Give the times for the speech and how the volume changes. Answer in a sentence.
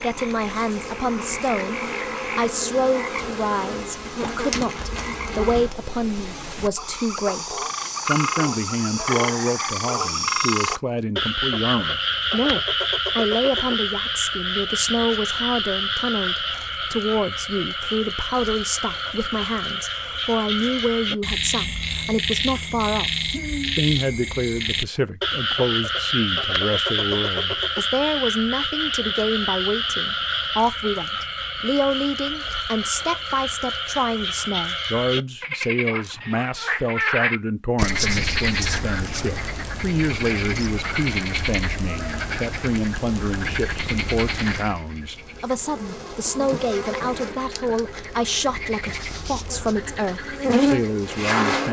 The speech can be heard from 0.0 to 51.6 s, at a steady volume.